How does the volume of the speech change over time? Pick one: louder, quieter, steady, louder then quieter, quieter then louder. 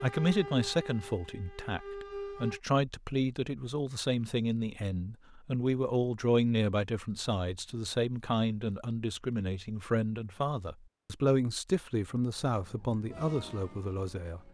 steady.